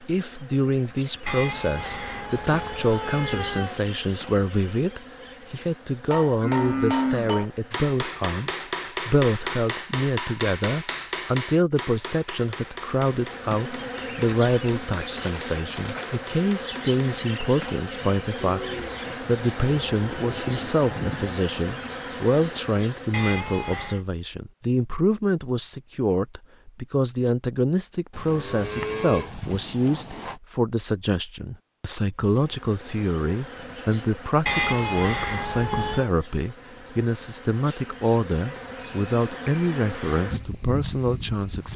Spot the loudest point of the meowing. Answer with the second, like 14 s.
35 s.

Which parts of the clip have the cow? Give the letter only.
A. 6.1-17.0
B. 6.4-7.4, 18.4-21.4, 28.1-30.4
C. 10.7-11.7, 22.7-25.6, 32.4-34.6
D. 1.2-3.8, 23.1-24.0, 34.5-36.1
B.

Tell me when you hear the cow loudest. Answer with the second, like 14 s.
7 s.